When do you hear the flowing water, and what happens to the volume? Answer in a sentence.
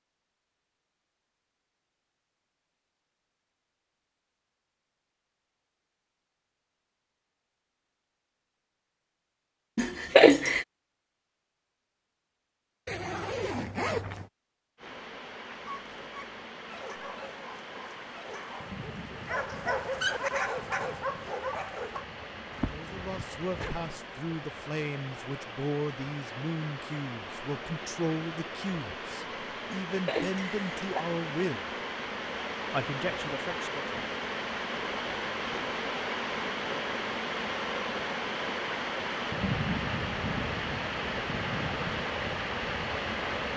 The flowing water can be heard from 14.8 to 43.5 s, getting louder.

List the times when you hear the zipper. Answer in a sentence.
The zipper can be heard from 12.8 to 14.3 s and from 22.5 to 23.8 s.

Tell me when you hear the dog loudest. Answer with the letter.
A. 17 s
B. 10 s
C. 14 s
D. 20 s
D.